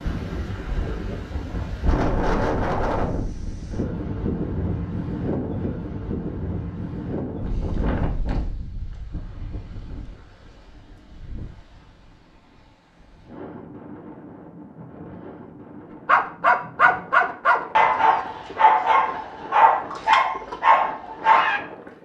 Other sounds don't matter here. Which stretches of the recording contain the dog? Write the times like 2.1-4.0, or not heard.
16.1-21.6.